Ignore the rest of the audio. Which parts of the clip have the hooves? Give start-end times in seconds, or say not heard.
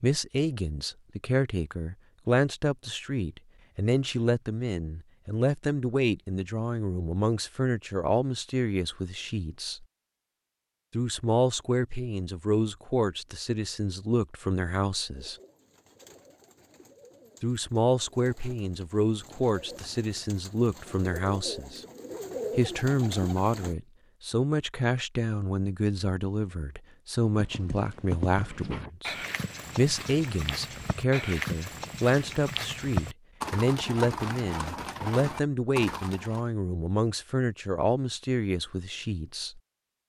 27.4-36.5.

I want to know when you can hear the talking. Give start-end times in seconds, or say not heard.
0.0-9.8, 10.9-15.3, 17.4-21.9, 22.6-29.1, 29.8-39.6.